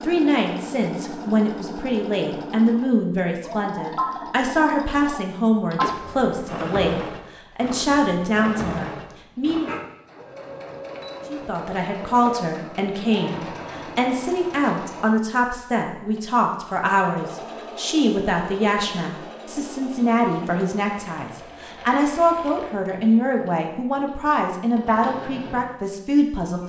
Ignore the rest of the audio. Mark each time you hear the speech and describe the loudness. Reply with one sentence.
You can hear the speech from 0.0 to 9.7 s, at a steady volume; and from 11.3 to 26.6 s, at a steady volume.